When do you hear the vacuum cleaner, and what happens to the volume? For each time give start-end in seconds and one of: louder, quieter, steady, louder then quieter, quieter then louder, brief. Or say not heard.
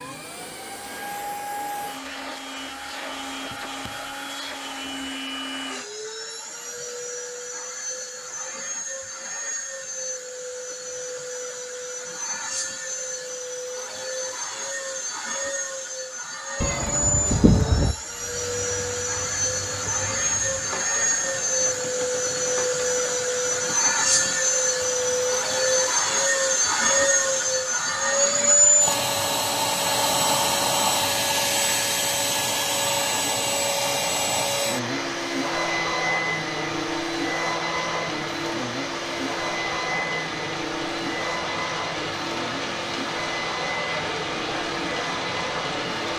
0.0-46.1 louder then quieter.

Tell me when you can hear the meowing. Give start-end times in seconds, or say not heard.
16.6-17.9.